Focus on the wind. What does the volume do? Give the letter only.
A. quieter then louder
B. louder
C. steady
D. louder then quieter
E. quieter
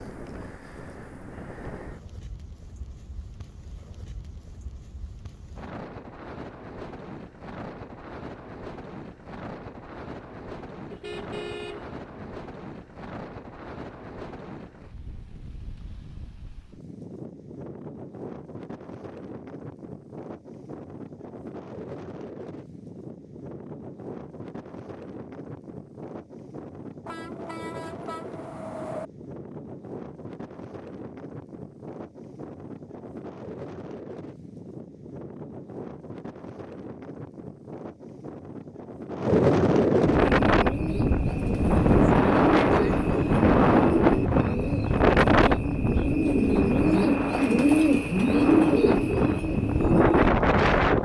B.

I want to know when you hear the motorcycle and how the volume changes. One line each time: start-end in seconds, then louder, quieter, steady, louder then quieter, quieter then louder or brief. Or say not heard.
not heard.